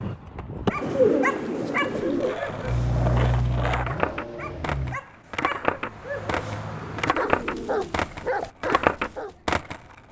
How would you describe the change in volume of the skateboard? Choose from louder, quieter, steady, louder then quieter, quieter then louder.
louder.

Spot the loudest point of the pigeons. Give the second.
1 s.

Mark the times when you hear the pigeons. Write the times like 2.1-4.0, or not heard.
0.8-2.4, 6.6-8.5.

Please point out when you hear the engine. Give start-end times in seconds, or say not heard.
2.6-5.0.